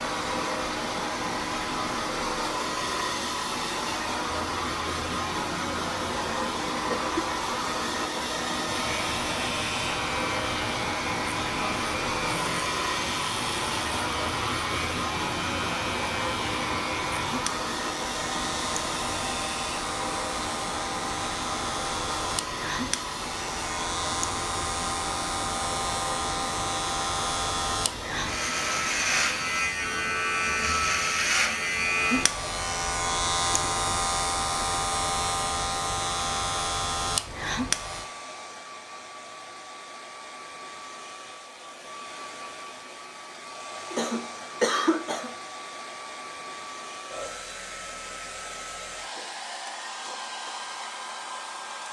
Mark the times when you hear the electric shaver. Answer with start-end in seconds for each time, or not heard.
8.7-38.1.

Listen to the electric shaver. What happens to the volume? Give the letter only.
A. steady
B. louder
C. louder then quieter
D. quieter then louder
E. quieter
B.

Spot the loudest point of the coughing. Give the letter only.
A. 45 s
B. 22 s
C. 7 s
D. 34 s
A.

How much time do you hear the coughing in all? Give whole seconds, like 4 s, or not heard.
2 s.